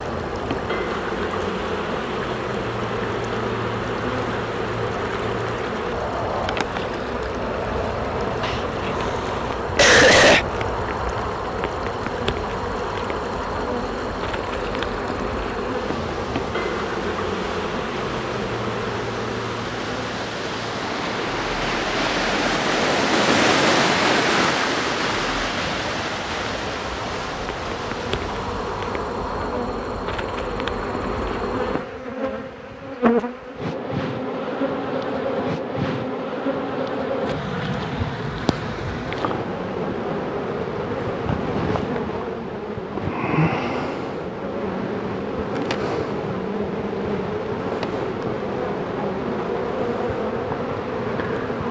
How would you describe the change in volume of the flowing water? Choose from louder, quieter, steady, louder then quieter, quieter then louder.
louder.